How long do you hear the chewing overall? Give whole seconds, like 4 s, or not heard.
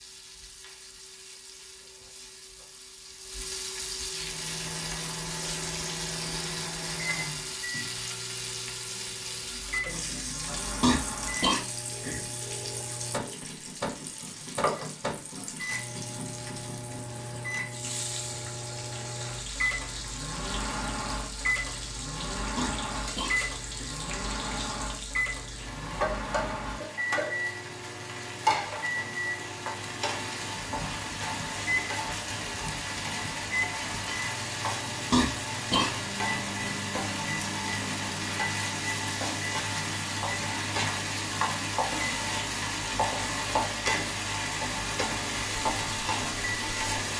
not heard.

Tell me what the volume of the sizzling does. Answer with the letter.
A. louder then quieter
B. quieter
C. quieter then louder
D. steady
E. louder
E.